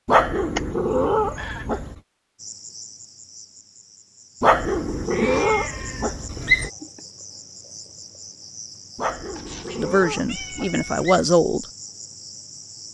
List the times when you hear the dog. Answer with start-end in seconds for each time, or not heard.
0.1-1.9, 4.4-6.7, 8.9-11.2.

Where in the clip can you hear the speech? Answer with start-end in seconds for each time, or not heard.
9.8-11.7.